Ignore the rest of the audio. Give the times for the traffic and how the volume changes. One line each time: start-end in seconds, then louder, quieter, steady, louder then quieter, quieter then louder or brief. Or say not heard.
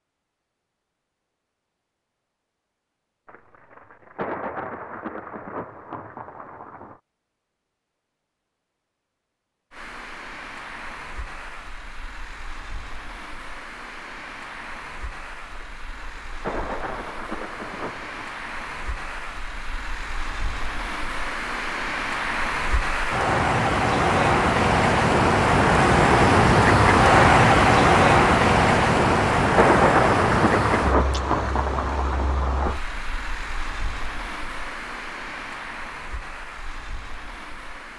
9.7-37.9 louder then quieter.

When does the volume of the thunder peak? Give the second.
30 s.